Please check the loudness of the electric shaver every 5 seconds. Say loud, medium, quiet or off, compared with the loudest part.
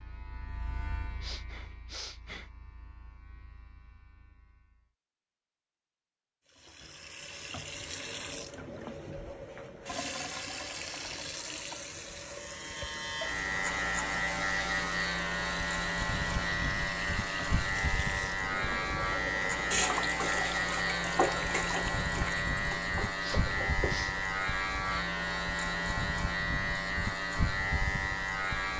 quiet, off, loud, loud, loud, loud.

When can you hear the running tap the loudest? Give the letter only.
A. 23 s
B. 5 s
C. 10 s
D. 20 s
D.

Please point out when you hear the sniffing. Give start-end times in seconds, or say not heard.
0.9-2.5, 22.9-24.1.